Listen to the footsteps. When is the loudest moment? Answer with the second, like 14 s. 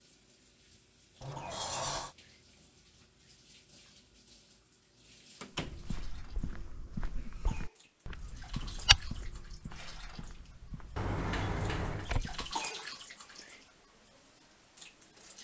9 s.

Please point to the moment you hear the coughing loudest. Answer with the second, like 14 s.
13 s.